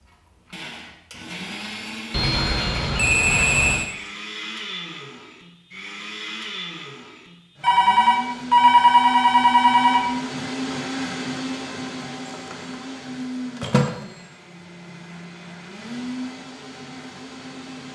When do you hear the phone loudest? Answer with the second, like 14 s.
9 s.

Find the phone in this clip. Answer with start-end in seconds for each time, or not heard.
2.1-3.9, 7.6-10.1, 12.2-12.8, 13.6-14.1.